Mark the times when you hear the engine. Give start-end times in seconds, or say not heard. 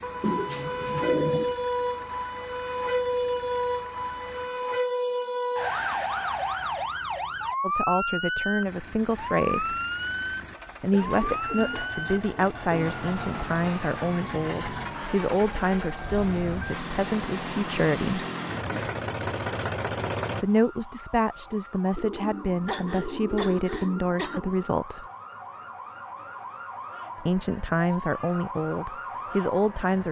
0.0-4.5, 8.7-20.4.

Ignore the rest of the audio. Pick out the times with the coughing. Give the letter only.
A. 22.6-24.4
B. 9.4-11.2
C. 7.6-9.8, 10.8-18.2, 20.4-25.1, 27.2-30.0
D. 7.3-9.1
A.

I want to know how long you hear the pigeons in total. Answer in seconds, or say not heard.
6 s.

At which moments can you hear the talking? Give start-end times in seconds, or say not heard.
7.6-9.8, 10.8-18.2, 20.4-25.1, 27.2-30.0.